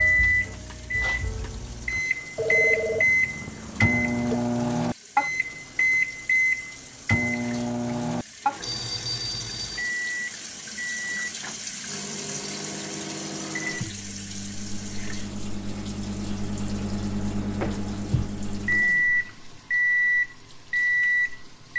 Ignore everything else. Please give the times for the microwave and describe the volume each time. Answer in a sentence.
You can hear the microwave from 0.0 to 21.7 s, getting quieter then louder.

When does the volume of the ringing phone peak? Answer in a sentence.
The volume of the ringing phone peaks at 3 seconds.